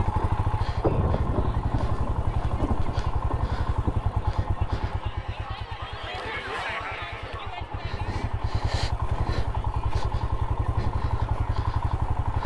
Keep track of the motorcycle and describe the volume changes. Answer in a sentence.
The volume of the motorcycle goes down, then up.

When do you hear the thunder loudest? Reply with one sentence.
The volume of the thunder peaks at 1 second.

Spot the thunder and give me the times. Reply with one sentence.
The thunder can be heard from 0.1 to 4.7 s.